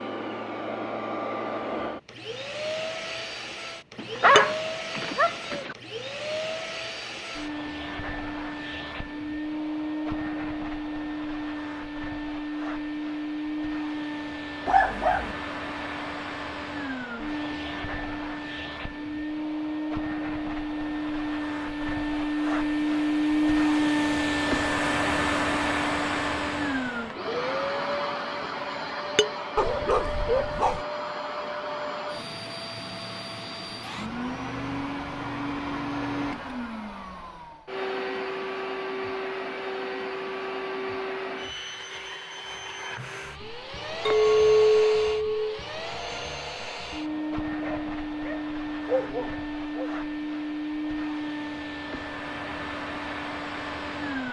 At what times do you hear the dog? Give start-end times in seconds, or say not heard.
4.0-5.8, 14.7-15.3, 29.6-30.9, 47.1-49.9.